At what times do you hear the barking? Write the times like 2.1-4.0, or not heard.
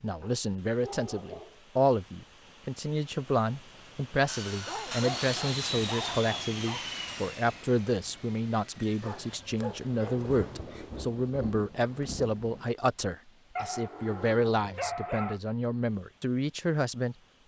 0.2-1.6, 4.7-6.8, 9.0-11.0, 13.6-15.4.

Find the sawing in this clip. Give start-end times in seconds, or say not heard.
4.2-9.2.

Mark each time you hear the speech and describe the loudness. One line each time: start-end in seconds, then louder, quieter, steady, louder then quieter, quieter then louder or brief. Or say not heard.
0.0-17.1 steady.